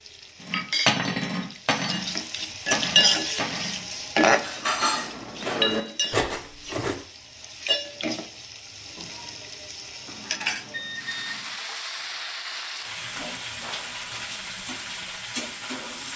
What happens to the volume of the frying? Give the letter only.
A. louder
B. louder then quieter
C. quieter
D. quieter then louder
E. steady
C.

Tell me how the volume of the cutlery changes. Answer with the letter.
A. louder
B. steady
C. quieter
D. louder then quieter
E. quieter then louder
E.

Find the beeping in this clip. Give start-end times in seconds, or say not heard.
10.1-11.4.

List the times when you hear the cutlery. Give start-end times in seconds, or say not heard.
0.4-7.0.